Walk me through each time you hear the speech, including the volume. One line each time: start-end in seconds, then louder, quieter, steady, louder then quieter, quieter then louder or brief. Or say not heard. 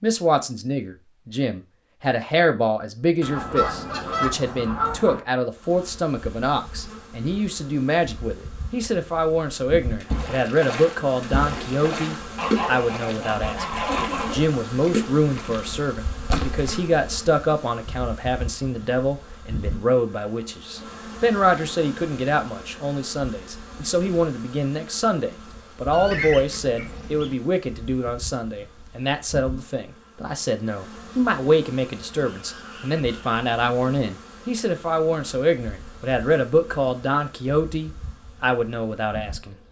0.0-39.5 steady.